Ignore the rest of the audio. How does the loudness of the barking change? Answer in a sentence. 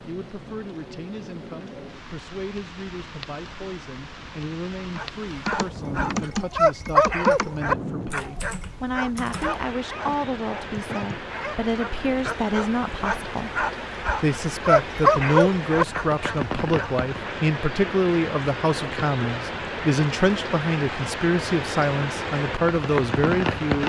The volume of the barking goes down, then up.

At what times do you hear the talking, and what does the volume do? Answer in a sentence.
The talking can be heard from 0.1 to 23.8 s, getting louder.